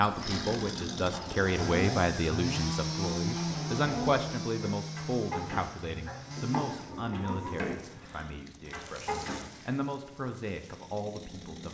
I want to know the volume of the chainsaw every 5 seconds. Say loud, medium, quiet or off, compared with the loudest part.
loud, medium, quiet.